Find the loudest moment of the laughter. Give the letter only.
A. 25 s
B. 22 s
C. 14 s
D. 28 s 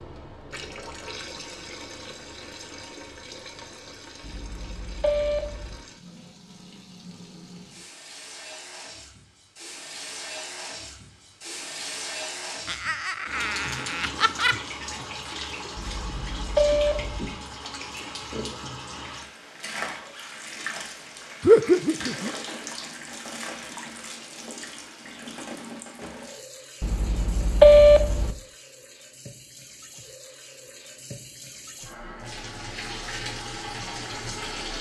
B.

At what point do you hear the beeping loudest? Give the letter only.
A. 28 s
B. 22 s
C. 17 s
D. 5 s
A.